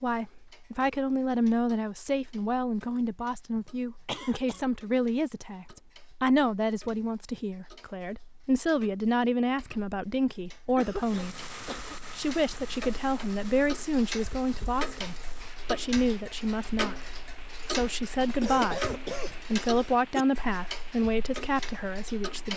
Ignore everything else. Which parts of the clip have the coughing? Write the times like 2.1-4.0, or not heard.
3.5-4.6, 10.8-11.9, 18.2-20.2.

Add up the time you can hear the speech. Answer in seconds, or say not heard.
21 s.